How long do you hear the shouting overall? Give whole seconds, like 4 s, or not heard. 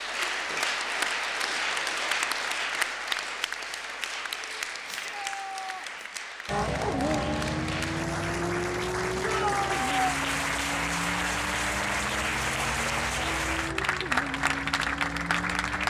2 s.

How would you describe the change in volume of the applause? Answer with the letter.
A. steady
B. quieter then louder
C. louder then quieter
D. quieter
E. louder
B.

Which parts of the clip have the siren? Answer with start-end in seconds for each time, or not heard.
not heard.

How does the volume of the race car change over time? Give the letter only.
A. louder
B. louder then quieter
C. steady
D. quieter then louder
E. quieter
E.